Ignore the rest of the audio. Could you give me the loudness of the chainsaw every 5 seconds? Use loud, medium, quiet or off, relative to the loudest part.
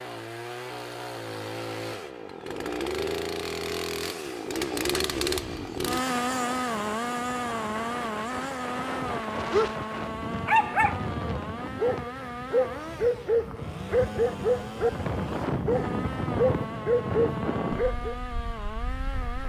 loud, loud, medium, medium.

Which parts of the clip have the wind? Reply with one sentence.
The wind can be heard from 4.8 to 19.4 s.